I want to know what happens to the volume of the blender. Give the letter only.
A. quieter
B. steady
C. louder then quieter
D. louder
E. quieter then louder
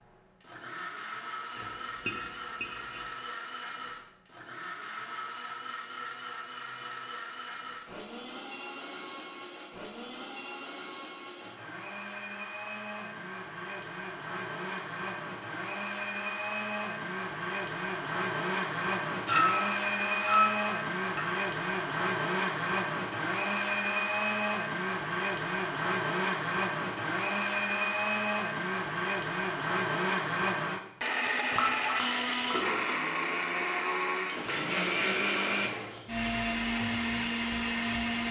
D.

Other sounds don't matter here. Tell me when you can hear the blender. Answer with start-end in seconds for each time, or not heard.
0.0-38.2.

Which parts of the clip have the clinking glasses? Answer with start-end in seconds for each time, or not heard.
1.6-3.0, 19.2-21.3, 31.6-32.8.